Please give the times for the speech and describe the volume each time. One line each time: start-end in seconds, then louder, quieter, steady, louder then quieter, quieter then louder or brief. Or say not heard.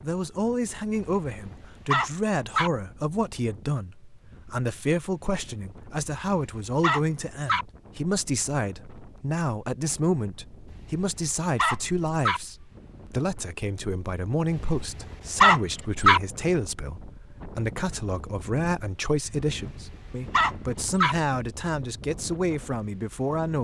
0.0-23.5 steady.